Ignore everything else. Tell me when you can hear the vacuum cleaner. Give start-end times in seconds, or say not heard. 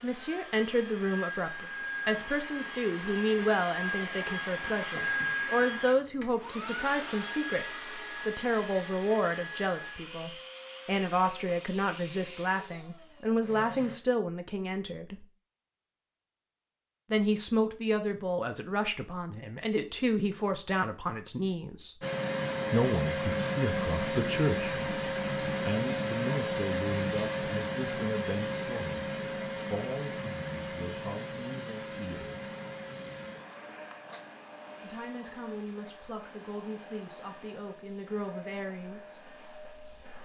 0.0-14.0, 22.0-40.2.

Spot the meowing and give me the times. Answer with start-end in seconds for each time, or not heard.
not heard.